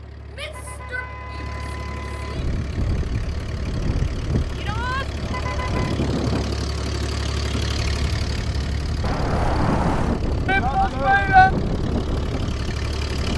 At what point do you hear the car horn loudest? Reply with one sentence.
The loudest moment of the car horn is at 10 seconds.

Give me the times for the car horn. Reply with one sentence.
You can hear the car horn from 0.4 to 2.4 s, from 5.2 to 6.0 s and from 9.0 to 10.2 s.